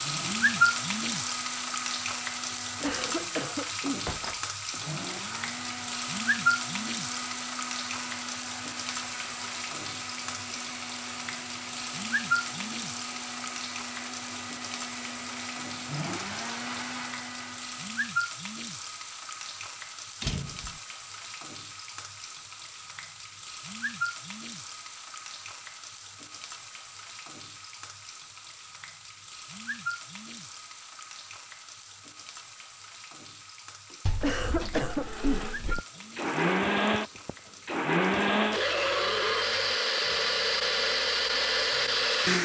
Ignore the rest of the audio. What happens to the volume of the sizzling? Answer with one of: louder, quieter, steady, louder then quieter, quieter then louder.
quieter.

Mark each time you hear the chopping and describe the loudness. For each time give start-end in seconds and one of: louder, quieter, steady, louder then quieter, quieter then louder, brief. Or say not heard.
not heard.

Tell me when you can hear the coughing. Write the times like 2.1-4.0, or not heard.
2.5-4.0, 34.2-35.5.